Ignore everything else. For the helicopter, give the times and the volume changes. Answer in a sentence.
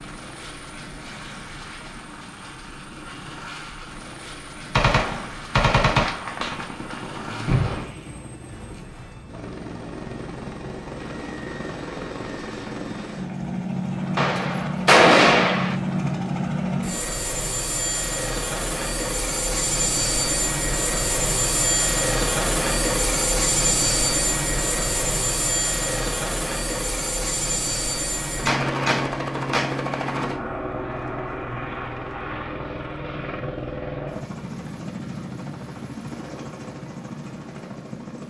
You can hear the helicopter from 0.0 to 38.2 s, getting louder then quieter.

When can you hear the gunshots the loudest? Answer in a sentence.
The loudest moment of the gunshots is at 15 seconds.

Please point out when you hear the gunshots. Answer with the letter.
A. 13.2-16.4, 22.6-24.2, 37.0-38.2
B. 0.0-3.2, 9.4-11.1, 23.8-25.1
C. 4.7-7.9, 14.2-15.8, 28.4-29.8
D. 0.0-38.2
C.